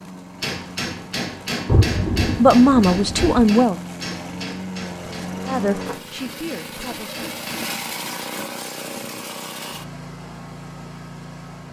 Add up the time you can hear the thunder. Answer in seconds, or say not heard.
2 s.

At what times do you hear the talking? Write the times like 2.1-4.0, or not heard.
2.4-3.8, 5.5-7.2.